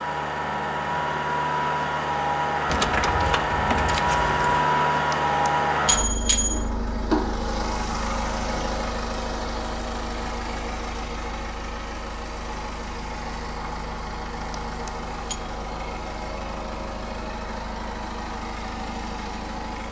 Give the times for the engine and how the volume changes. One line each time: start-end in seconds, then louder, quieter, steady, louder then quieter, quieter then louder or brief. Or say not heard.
0.0-19.8 quieter.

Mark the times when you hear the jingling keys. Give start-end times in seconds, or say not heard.
2.6-4.4.